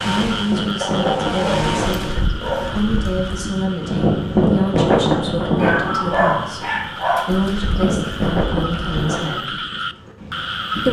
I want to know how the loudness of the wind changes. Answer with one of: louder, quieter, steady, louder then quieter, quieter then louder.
louder then quieter.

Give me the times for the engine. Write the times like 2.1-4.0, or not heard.
0.0-2.2.